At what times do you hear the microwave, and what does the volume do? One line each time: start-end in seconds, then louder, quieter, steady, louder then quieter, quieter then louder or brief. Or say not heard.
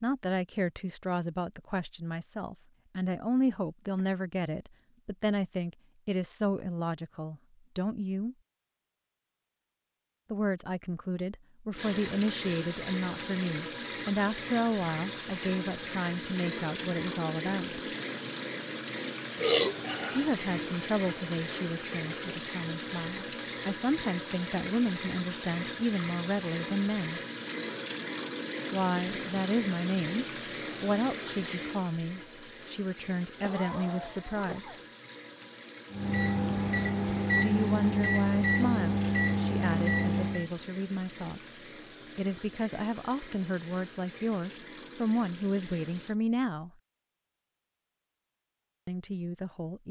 35.9-40.5 steady.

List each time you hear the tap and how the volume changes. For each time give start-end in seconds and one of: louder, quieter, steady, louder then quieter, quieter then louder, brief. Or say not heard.
11.7-46.1 quieter.